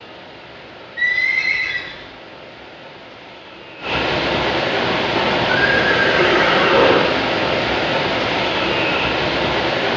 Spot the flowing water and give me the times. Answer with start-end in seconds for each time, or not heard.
0.0-9.9.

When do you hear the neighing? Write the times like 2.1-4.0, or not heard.
0.9-2.0, 5.2-7.1.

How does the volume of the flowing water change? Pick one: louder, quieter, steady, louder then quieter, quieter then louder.
louder.